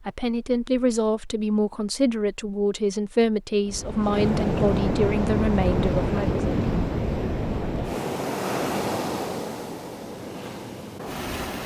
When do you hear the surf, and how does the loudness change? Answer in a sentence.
The surf can be heard from 3.6 to 11.6 s, getting quieter.